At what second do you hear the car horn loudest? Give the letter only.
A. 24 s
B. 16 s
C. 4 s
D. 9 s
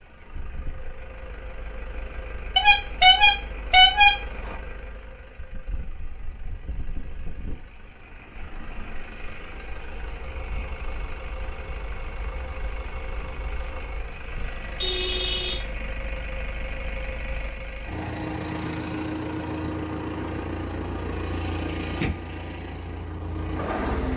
C.